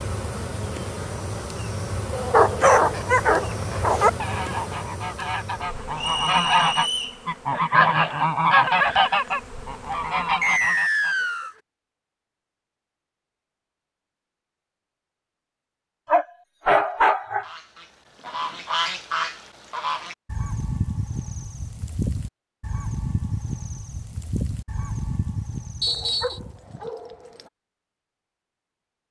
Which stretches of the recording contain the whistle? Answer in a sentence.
The whistle can be heard from 6.0 to 7.2 s, from 10.4 to 11.6 s and from 25.8 to 26.4 s.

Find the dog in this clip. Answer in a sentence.
The dog can be heard from 2.1 to 4.1 s, from 16.1 to 17.4 s and from 25.9 to 27.5 s.